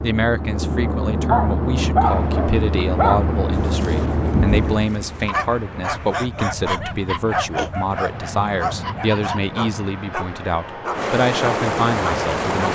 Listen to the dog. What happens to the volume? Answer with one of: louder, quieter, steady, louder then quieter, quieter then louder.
quieter.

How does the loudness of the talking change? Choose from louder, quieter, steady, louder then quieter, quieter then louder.
steady.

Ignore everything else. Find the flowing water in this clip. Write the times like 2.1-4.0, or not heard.
2.0-12.6.